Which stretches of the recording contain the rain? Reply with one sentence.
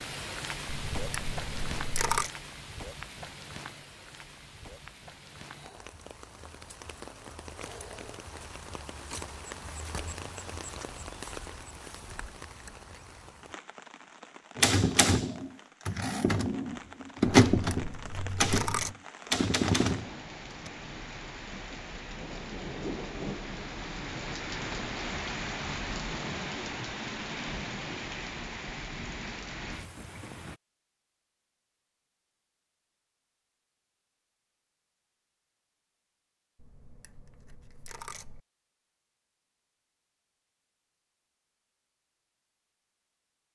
You can hear the rain from 0.0 to 30.6 s.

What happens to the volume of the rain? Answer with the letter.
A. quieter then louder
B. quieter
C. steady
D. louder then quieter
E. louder
A.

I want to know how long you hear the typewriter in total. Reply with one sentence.
You can hear the typewriter for 6 seconds altogether.